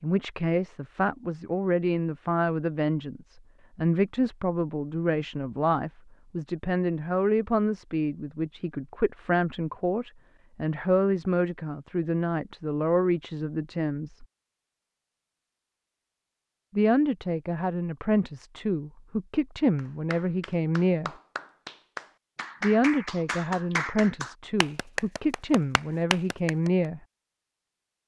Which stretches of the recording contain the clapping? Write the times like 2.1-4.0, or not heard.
19.8-26.7.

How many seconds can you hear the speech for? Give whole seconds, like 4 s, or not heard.
23 s.